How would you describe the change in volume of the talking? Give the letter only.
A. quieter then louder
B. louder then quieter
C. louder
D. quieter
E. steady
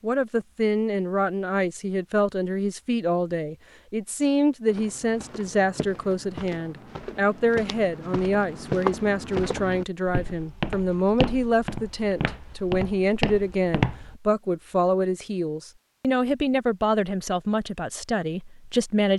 E.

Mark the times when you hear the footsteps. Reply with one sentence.
You can hear the footsteps from 4.7 to 14.2 s.